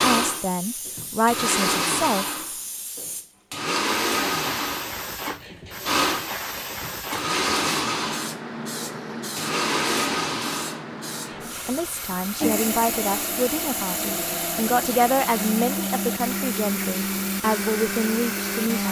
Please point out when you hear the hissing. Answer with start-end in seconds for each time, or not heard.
0.2-18.8.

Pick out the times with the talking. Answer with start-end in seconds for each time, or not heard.
0.0-2.2, 11.7-18.8.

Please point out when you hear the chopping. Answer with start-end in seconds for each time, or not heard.
not heard.